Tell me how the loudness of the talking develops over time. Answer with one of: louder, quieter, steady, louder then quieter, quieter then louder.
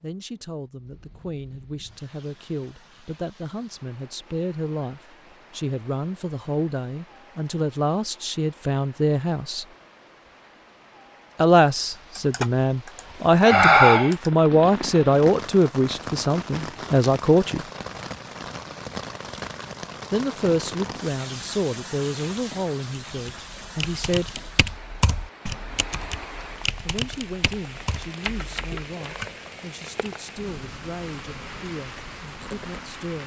louder then quieter.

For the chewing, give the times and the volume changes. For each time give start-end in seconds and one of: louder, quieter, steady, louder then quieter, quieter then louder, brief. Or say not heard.
not heard.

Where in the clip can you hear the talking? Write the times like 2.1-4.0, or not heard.
0.0-9.7, 11.3-17.6, 20.1-24.4, 26.9-33.2.